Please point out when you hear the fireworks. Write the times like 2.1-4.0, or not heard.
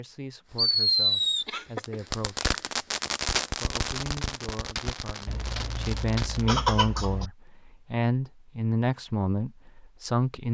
0.6-6.5.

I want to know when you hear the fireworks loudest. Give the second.
1 s.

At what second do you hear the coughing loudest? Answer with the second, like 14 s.
7 s.